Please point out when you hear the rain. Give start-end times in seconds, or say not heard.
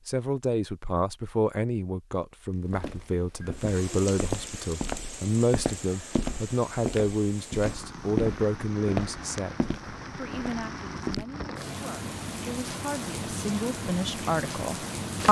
3.5-15.2.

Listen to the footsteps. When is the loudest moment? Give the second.
8 s.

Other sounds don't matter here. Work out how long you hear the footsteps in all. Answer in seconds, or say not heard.
9 s.